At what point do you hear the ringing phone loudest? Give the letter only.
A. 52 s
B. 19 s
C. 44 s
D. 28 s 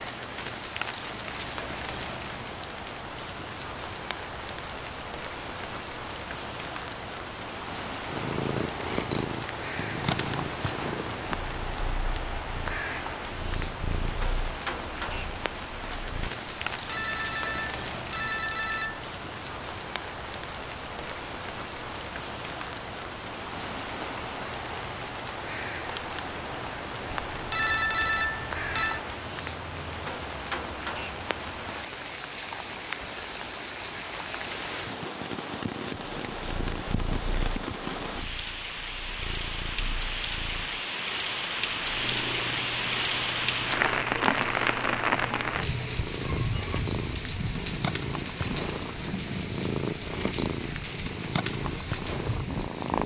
D.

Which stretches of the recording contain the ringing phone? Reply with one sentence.
You can hear the ringing phone from 16.7 to 19.1 s and from 27.1 to 29.0 s.